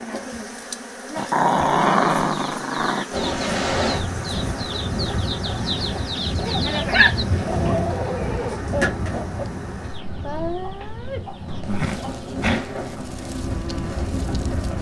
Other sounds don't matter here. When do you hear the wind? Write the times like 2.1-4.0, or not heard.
3.1-14.7.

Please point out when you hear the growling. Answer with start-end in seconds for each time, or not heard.
1.1-3.0, 6.5-7.8, 11.4-13.1.